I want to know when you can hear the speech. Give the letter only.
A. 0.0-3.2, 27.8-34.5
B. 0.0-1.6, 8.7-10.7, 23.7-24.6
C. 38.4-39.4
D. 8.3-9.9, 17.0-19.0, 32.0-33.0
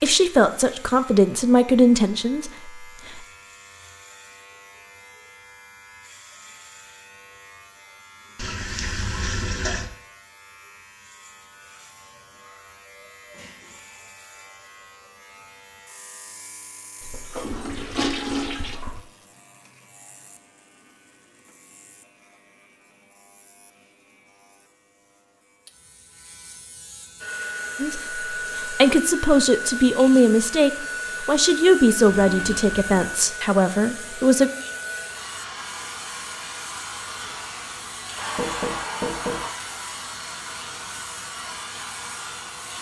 A.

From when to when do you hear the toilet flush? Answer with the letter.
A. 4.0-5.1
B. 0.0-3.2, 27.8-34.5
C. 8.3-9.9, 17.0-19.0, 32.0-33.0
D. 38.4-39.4
C.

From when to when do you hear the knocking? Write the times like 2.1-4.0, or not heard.
38.4-39.4.